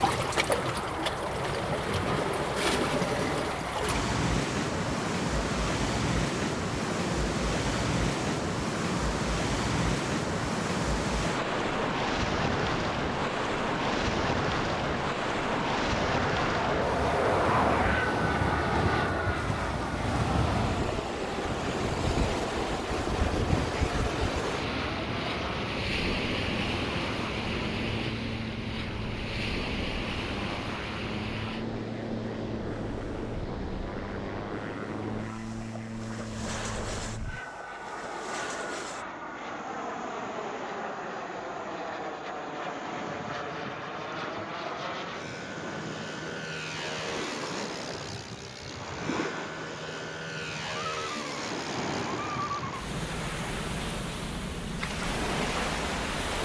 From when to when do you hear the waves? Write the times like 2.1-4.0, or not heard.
0.0-56.4.